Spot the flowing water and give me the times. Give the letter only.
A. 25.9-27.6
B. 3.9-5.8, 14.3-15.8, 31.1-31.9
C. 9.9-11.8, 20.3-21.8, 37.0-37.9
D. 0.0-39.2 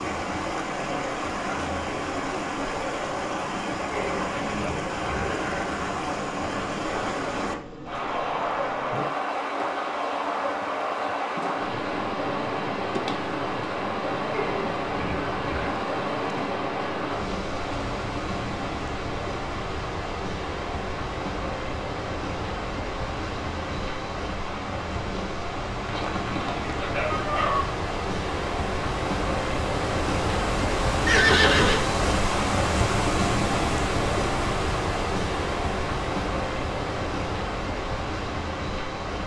D.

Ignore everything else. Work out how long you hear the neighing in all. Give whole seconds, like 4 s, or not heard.
4 s.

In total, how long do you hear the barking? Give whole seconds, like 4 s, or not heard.
2 s.